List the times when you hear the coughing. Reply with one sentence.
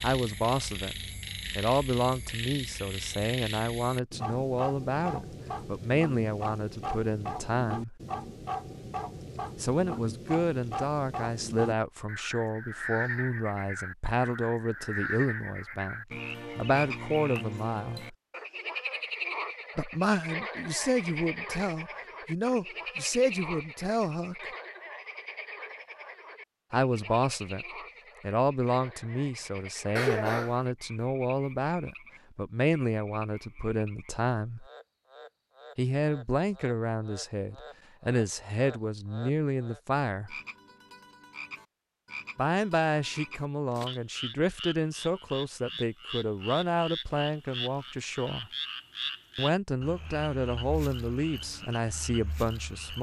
The coughing can be heard from 29.9 to 30.6 s.